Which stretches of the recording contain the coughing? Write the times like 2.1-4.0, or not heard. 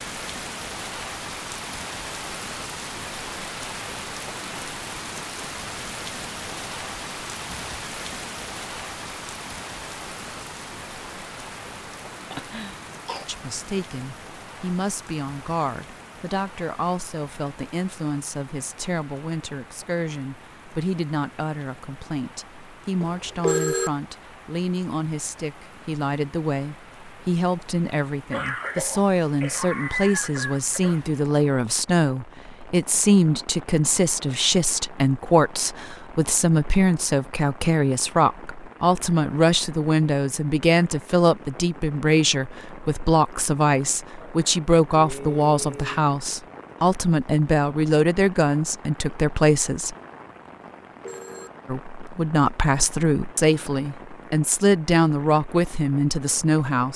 12.3-13.2, 28.3-31.0, 44.2-46.0.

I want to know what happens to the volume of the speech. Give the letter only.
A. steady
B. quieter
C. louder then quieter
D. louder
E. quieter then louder
D.